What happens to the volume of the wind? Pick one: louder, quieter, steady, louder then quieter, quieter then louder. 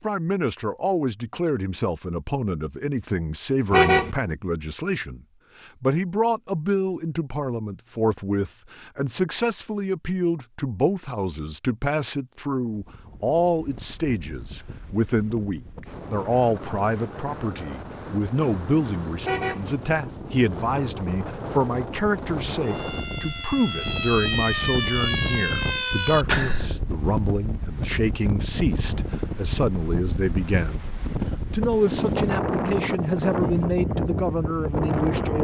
louder.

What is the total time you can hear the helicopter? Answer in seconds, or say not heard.
not heard.